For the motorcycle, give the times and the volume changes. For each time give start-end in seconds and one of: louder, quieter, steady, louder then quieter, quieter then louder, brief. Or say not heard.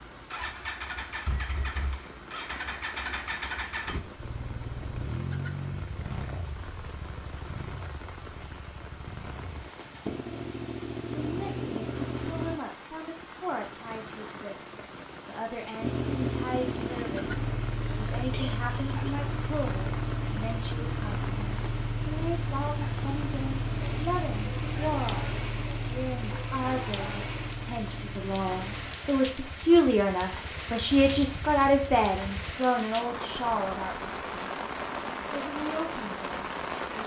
0.0-12.6 quieter then louder
15.8-32.5 quieter.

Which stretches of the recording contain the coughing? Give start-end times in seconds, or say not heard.
17.9-19.1.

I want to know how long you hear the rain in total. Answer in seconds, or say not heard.
37 s.